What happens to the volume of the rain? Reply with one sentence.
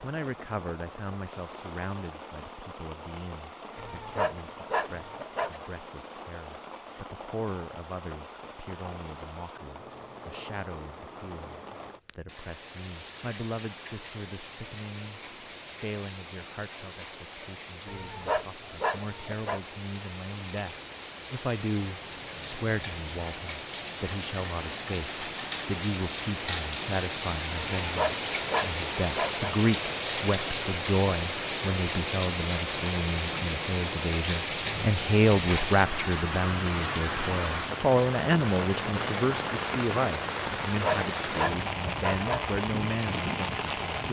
The volume of the rain goes up.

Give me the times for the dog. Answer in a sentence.
The dog can be heard from 3.8 to 5.7 s, from 17.9 to 19.6 s, from 27.8 to 29.6 s and from 40.6 to 42.5 s.